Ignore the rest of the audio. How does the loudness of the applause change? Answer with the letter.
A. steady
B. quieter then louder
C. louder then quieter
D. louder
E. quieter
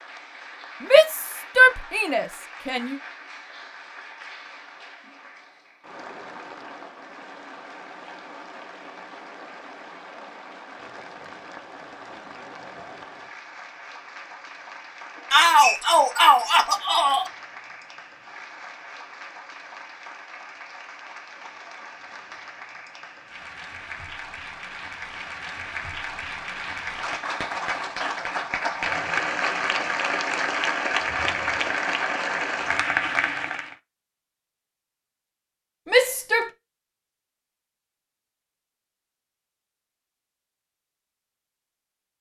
D.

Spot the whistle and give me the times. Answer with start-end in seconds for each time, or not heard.
15.2-15.8.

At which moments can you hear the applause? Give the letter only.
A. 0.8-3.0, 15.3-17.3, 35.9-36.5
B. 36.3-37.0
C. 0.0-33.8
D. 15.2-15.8
C.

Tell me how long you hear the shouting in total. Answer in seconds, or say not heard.
5 s.